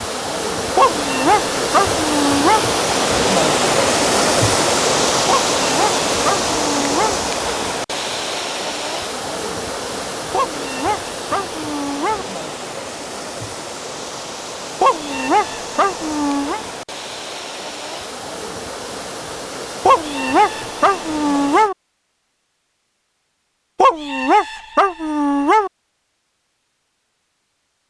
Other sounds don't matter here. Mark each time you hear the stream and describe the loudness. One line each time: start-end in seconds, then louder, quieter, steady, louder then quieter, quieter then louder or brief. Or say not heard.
0.0-21.7 quieter.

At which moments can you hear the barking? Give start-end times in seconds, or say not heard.
0.8-2.6, 5.2-7.2, 10.3-12.2, 14.8-16.6, 19.9-21.8, 23.8-25.7.